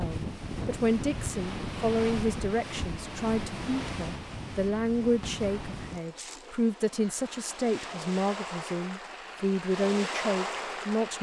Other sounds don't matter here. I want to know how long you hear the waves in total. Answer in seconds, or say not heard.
11 s.